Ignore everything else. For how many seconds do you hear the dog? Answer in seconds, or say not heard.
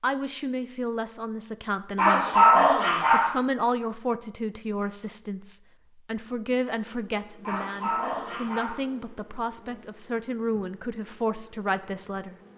3 s.